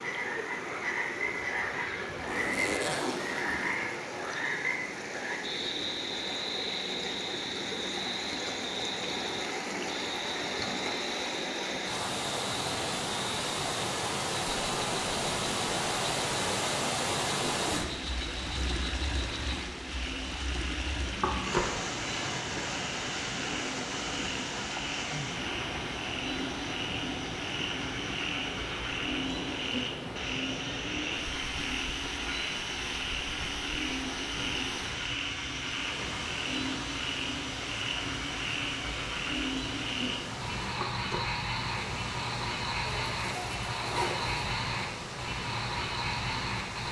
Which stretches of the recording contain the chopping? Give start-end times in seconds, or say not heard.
20.9-21.9, 40.6-41.4.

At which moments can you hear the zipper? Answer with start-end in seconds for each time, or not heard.
2.2-3.8, 17.6-18.7, 42.9-44.5.